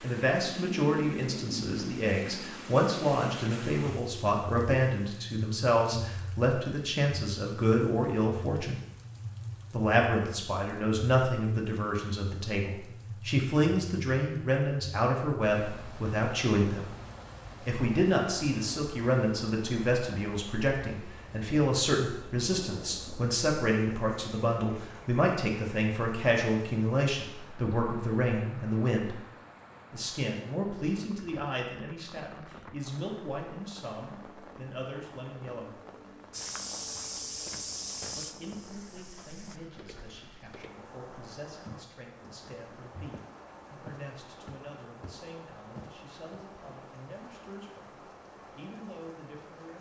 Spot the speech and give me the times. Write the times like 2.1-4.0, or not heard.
0.0-8.8, 9.7-16.9, 17.6-29.2, 29.9-35.8, 38.1-48.0, 48.5-49.7.